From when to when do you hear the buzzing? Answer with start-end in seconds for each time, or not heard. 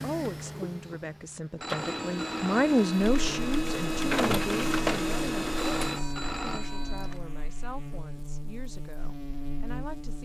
3.0-10.2.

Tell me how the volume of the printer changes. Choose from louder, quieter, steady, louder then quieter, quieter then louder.
louder.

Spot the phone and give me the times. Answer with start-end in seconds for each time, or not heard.
1.6-3.2, 5.5-7.2.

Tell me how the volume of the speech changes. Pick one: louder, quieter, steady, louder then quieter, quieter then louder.
louder then quieter.